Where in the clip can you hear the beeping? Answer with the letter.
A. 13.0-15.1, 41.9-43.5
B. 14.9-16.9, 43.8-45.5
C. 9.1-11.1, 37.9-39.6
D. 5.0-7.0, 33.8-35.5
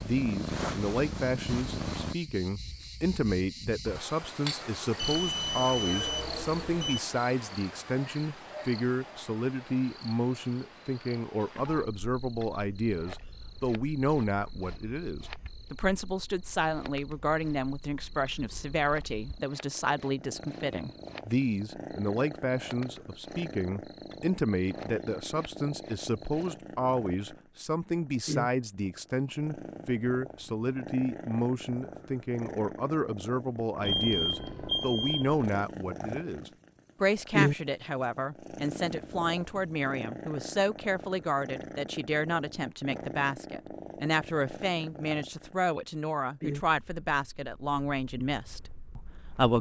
D.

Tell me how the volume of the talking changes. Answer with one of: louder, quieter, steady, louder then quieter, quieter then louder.
steady.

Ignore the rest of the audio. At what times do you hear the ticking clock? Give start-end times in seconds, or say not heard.
not heard.